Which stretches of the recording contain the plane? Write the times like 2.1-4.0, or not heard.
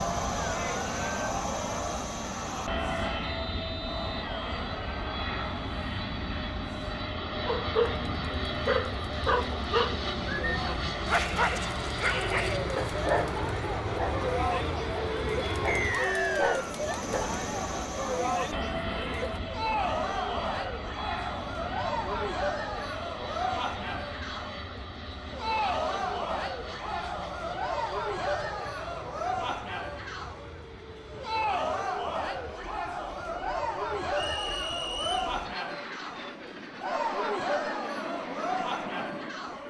0.0-39.6.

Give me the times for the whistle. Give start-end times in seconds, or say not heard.
3.2-4.2, 15.7-16.8, 34.1-35.3.